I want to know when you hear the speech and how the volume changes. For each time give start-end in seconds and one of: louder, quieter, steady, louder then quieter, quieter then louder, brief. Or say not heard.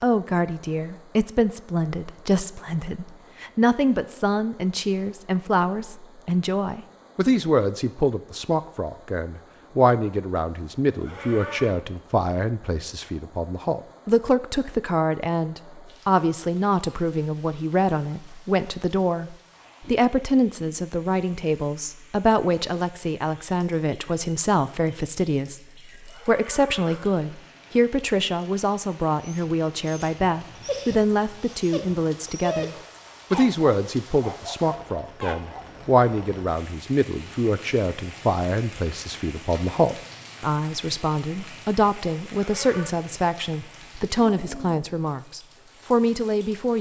0.0-46.7 steady.